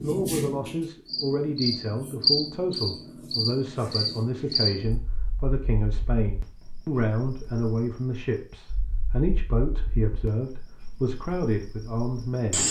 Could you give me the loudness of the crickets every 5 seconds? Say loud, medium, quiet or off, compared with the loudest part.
loud, quiet, medium.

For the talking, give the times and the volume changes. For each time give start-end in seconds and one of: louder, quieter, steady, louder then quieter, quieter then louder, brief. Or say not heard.
0.0-12.6 steady.